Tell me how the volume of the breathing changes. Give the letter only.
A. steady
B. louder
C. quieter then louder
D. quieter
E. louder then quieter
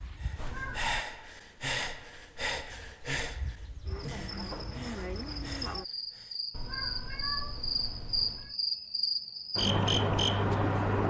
D.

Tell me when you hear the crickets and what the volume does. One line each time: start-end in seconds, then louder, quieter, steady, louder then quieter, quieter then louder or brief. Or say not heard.
0.0-11.0 louder.